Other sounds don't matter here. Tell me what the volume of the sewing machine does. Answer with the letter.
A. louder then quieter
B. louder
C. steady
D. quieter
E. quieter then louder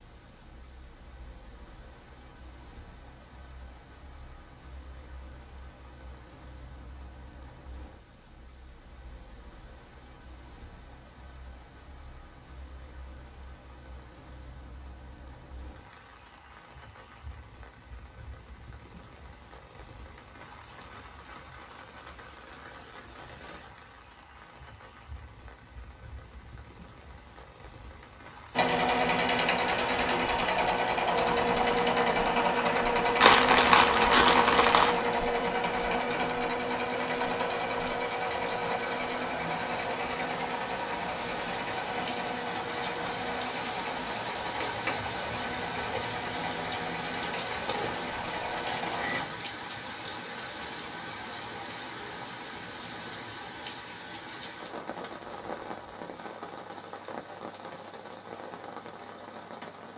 D.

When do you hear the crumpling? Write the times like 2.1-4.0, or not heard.
33.2-35.0.